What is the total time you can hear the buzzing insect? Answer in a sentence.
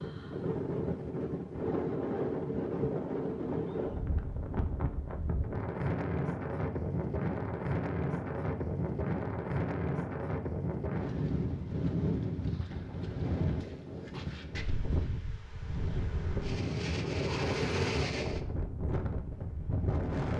You can hear the buzzing insect for 2 seconds altogether.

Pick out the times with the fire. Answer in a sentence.
The fire can't be heard in this clip.